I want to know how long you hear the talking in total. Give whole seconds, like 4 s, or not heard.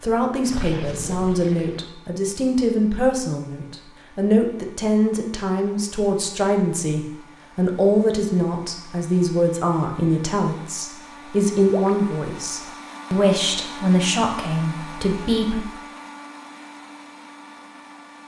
16 s.